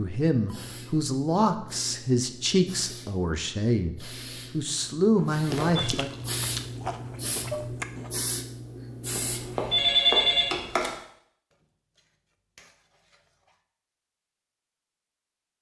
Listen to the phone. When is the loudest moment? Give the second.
10 s.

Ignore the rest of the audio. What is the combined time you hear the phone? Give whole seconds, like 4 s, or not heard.
3 s.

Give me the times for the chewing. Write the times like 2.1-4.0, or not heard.
5.5-8.2.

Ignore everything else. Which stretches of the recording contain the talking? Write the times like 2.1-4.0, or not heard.
0.0-6.1.